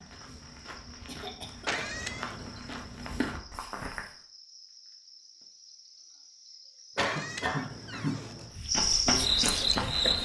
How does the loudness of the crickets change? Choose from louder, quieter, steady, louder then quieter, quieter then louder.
louder.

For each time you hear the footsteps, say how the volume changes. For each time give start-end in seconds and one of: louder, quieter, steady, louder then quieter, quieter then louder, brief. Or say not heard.
0.0-4.1 louder
8.5-10.2 brief.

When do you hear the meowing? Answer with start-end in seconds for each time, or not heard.
1.6-2.6, 7.0-8.6.